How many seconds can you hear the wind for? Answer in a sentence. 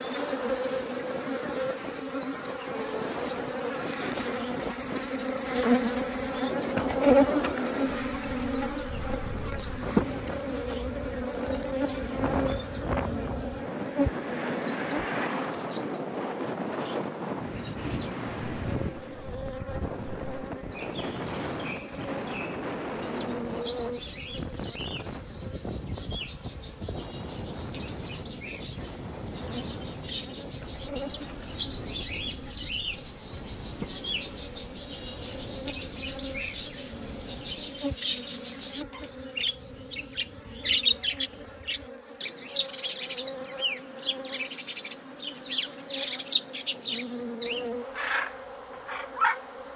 You can hear the wind for 38 seconds altogether.